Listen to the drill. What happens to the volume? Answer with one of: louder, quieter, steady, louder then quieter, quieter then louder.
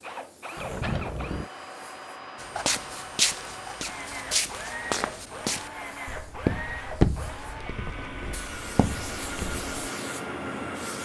steady.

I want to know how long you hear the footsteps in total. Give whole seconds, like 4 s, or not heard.
7 s.